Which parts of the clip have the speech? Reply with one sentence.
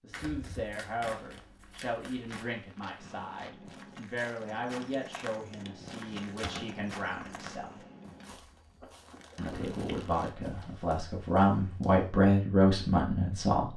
You can hear the speech from 0.0 to 7.8 s and from 9.3 to 13.7 s.